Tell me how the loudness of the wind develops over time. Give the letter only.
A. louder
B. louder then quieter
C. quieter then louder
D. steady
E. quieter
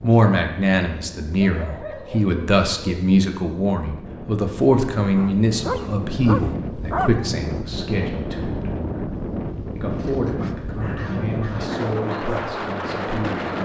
A.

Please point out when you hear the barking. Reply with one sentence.
You can hear the barking from 1.4 to 3.0 s, from 5.2 to 7.3 s and from 9.9 to 11.8 s.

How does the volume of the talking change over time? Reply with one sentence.
The loudness of the talking goes down.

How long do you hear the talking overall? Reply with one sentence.
The talking can be heard for 13 seconds in total.